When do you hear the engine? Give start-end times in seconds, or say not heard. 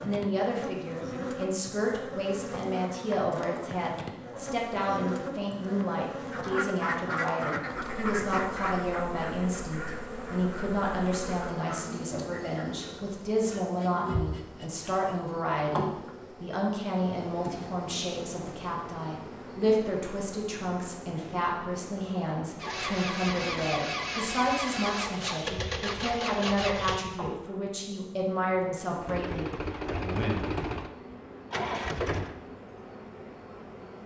22.6-27.3, 29.0-32.4.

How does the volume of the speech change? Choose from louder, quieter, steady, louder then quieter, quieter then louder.
steady.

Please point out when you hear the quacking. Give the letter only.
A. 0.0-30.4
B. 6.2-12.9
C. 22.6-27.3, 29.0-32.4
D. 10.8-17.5
B.